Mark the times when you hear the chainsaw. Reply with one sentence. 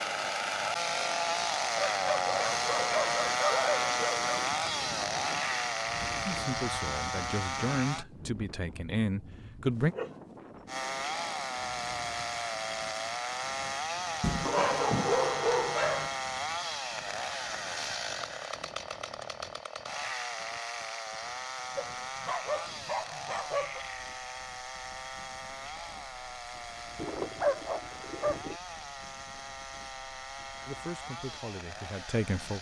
The chainsaw can be heard from 0.0 to 8.1 s and from 10.7 to 32.5 s.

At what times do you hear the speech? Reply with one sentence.
The speech can be heard from 6.2 to 9.9 s and from 30.6 to 32.5 s.